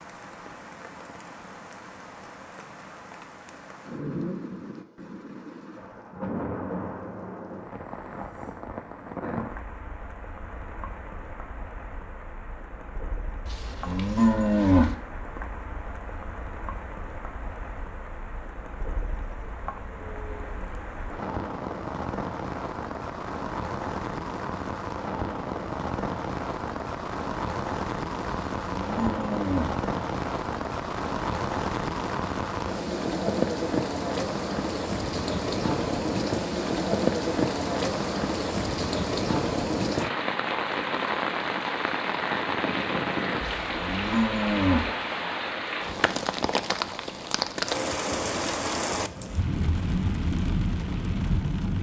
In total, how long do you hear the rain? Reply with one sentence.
You can hear the rain for 52 seconds altogether.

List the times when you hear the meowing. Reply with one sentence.
You can't hear the meowing here.